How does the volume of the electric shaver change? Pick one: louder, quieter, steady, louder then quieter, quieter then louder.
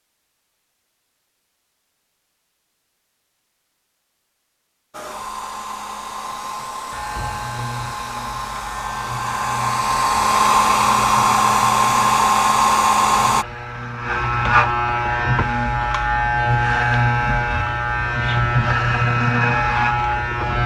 louder.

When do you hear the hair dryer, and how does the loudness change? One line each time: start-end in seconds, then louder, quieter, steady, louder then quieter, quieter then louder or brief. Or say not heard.
4.9-13.4 louder.